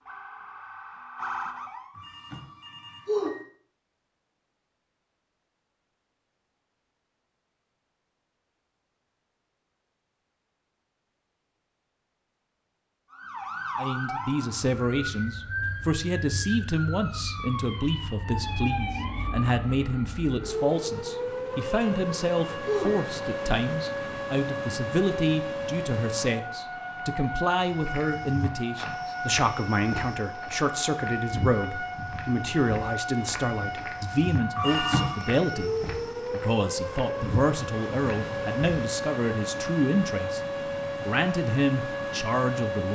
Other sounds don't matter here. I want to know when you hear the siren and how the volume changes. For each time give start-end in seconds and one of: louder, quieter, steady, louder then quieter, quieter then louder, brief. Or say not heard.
0.0-1.9 brief
13.1-42.8 steady.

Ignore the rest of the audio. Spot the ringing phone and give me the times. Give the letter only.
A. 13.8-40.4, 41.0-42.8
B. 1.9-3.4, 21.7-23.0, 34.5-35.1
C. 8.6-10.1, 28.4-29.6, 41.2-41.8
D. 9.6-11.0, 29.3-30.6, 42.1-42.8
B.